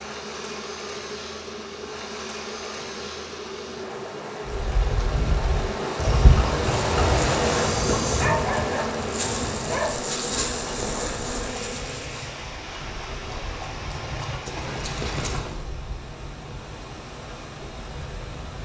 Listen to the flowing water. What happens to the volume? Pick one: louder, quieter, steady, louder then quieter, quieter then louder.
louder then quieter.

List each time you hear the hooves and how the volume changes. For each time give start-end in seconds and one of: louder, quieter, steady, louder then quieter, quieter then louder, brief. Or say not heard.
4.5-15.7 quieter then louder.